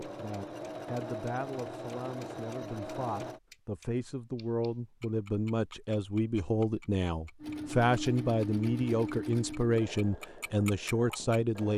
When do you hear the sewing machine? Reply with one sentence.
The sewing machine can be heard from 0.0 to 3.4 s and from 7.4 to 11.7 s.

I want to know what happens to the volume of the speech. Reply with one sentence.
The volume of the speech goes up.